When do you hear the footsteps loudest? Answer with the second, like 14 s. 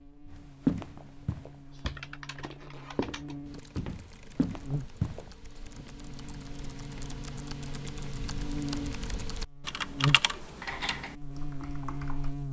1 s.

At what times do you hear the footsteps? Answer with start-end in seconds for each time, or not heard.
0.3-5.2.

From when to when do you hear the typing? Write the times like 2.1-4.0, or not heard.
1.7-12.3.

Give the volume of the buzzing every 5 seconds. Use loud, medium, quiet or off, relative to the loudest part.
medium, medium, loud.